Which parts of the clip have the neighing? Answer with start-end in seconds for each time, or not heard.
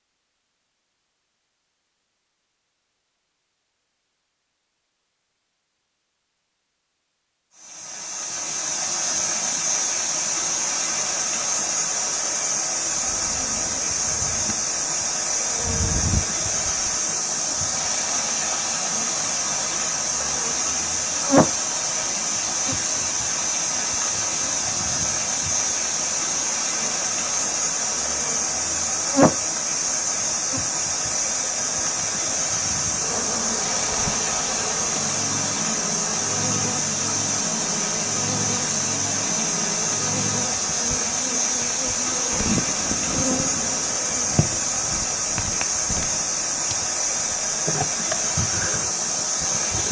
not heard.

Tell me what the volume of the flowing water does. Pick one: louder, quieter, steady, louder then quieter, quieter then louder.
steady.